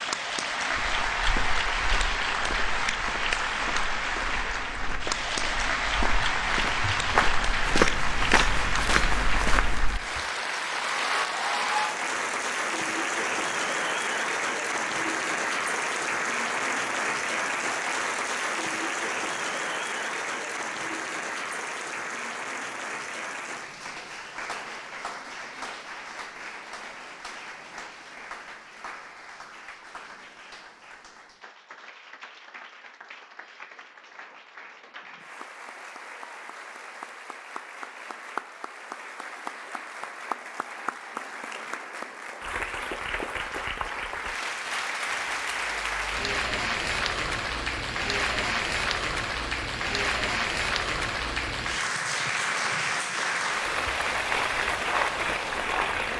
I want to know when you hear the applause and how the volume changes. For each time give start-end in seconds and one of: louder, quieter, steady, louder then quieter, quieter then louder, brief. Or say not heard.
0.0-56.1 quieter then louder.